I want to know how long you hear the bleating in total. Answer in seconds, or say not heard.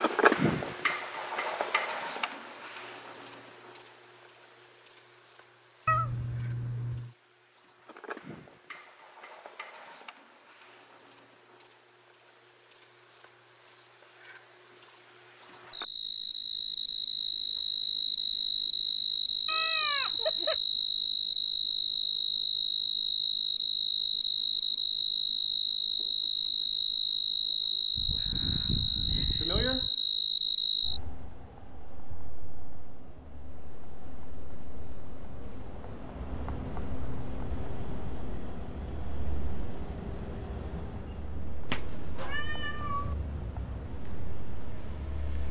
3 s.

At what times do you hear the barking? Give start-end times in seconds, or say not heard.
not heard.